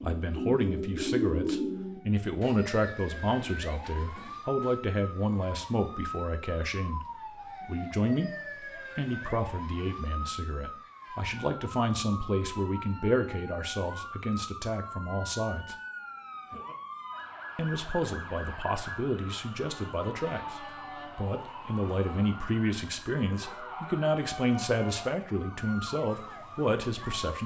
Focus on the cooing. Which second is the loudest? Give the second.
1 s.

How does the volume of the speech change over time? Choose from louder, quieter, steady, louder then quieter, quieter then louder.
steady.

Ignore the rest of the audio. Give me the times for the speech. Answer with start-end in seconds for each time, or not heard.
0.0-8.3, 8.9-15.8, 17.6-27.4.